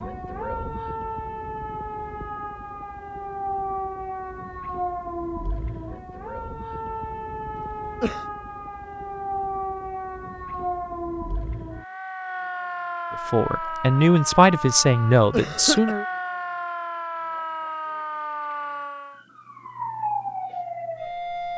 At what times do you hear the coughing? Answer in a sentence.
You can hear the coughing from 7.5 to 8.2 s and from 15.3 to 15.9 s.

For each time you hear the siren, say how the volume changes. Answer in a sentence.
The siren can be heard from 0.0 to 21.5 s, at a steady volume.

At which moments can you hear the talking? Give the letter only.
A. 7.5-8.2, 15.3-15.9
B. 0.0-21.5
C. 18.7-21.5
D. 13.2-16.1
D.